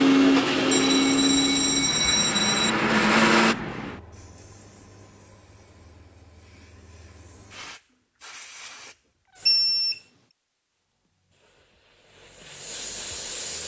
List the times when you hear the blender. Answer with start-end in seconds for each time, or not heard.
0.0-3.5.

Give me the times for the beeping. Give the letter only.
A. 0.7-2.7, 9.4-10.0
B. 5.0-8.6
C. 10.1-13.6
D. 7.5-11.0
A.